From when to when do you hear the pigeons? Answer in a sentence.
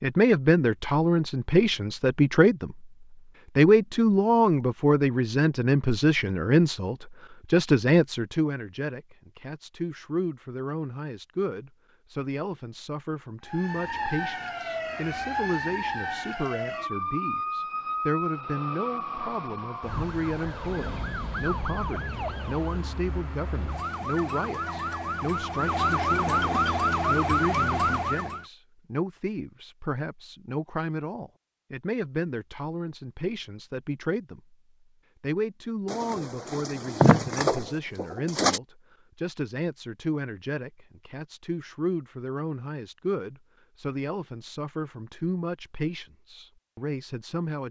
The pigeons can be heard from 35.9 to 38.6 s.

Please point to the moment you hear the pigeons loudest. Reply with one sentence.
The loudest moment of the pigeons is at 37 seconds.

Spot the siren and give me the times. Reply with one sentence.
You can hear the siren from 13.4 to 28.4 s.